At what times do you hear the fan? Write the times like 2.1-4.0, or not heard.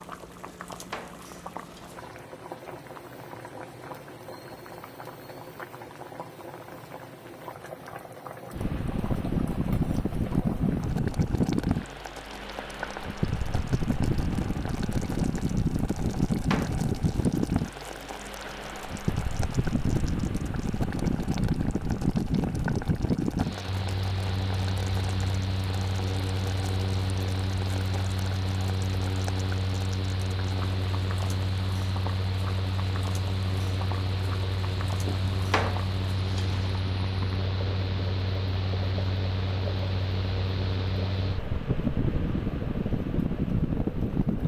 8.5-44.4.